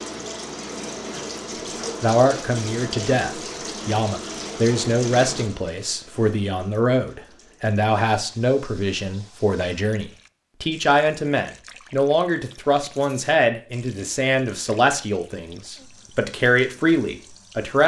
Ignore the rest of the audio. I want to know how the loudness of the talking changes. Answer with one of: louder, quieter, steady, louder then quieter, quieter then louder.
steady.